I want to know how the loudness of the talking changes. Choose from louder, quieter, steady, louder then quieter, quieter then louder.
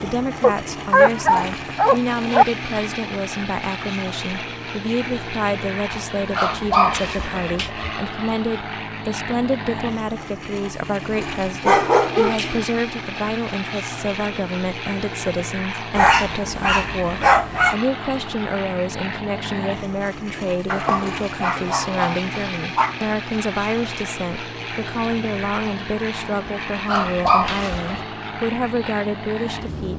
steady.